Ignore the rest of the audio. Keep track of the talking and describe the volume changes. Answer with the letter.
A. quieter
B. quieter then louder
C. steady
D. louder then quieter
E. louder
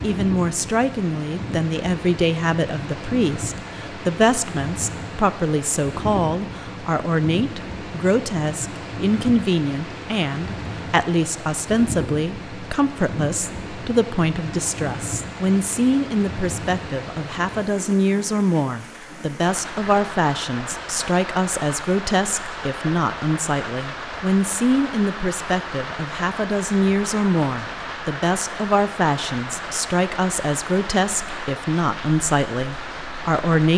C.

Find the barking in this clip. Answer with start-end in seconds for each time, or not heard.
not heard.